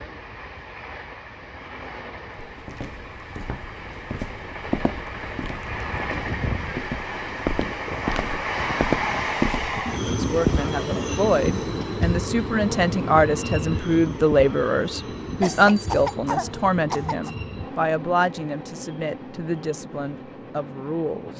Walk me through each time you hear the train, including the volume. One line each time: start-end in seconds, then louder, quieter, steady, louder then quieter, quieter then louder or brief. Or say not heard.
0.0-21.3 louder then quieter.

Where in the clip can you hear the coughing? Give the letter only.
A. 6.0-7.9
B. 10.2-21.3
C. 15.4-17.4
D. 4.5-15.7
C.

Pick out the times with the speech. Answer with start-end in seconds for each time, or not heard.
10.2-21.3.